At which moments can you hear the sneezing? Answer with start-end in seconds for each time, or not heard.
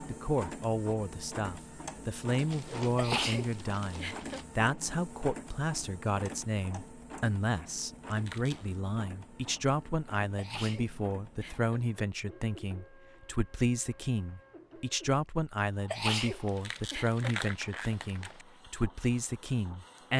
3.0-4.4, 10.3-11.8, 15.9-17.2.